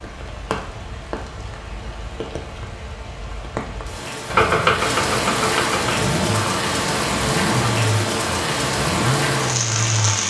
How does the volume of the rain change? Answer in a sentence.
The loudness of the rain goes up.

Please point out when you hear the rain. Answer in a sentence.
You can hear the rain from 0.0 to 10.2 s.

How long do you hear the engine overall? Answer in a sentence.
The engine can be heard for 6 seconds in total.